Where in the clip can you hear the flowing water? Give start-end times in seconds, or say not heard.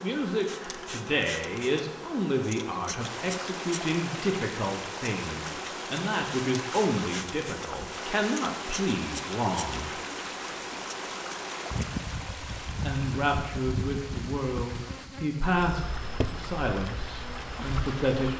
3.0-18.3.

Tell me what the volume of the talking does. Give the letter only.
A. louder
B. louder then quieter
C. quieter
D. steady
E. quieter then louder
D.